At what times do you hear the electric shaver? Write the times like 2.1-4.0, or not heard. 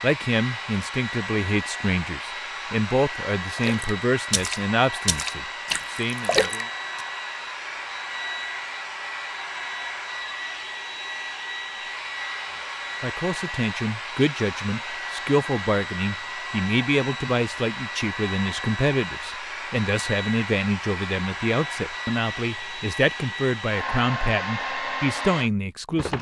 not heard.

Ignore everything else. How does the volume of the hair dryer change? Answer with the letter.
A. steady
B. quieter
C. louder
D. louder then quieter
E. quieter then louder
A.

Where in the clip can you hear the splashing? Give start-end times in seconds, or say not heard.
3.5-7.0.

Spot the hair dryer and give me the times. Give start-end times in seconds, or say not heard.
0.0-26.1.